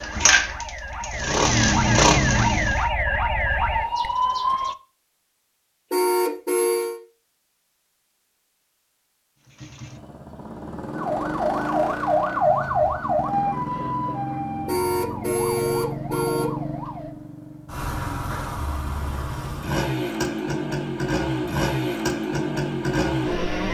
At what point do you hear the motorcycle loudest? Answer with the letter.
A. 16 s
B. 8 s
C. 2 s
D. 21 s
C.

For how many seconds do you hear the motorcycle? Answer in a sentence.
You can hear the motorcycle for 17 seconds altogether.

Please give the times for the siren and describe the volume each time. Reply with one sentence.
The siren can be heard from 0.0 to 4.8 s, getting louder; and from 10.9 to 17.1 s, getting quieter.